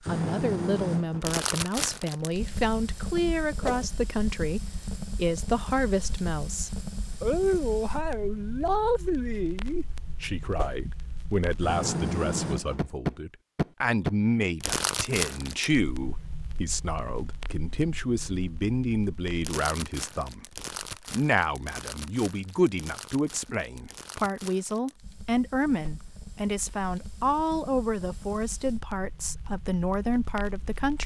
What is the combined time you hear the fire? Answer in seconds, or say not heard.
31 s.